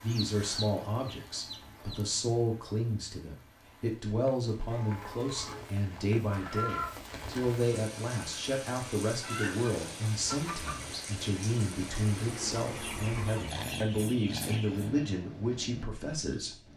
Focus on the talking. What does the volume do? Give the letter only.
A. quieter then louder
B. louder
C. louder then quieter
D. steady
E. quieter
D.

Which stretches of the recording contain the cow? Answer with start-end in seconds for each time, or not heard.
not heard.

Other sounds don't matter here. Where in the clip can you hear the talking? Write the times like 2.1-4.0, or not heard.
0.0-16.6.